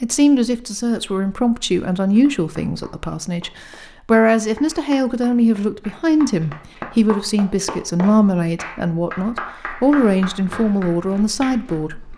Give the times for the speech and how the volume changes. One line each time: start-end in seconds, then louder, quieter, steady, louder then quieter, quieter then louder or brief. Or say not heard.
0.0-12.1 steady.